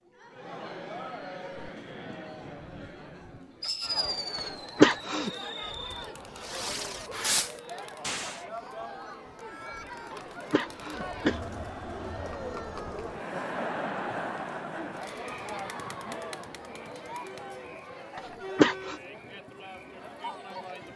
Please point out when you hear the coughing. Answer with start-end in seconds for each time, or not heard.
4.3-5.3, 10.1-11.4, 18.1-18.9.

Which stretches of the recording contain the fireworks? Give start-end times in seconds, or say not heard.
1.6-8.4.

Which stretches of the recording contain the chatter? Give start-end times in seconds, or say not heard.
0.1-20.9.